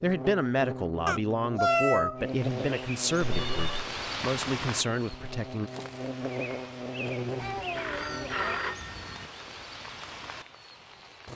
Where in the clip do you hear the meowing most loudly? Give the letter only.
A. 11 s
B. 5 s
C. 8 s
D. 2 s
D.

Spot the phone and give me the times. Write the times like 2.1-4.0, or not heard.
3.2-3.9, 7.8-9.3.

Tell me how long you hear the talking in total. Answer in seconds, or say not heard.
6 s.